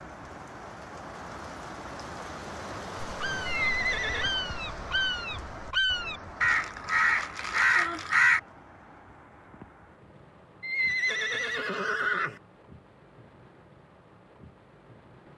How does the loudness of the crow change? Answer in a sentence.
The loudness of the crow goes up.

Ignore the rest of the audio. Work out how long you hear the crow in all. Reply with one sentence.
The crow can be heard for 5 seconds in total.